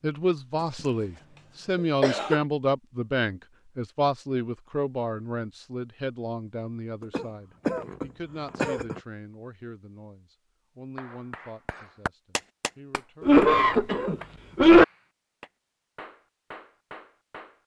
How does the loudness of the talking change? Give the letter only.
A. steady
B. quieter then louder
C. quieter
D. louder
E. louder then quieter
C.